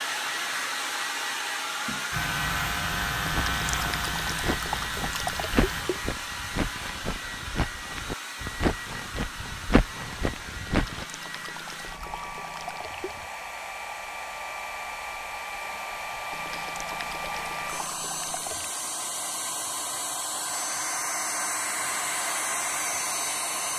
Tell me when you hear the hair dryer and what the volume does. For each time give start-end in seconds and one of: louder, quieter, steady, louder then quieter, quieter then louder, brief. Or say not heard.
0.0-23.7 quieter then louder.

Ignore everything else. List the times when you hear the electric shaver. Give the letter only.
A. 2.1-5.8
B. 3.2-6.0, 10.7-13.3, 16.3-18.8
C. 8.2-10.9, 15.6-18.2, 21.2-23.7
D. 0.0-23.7
A.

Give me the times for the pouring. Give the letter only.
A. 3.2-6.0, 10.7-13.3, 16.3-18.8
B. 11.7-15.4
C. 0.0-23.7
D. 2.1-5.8
A.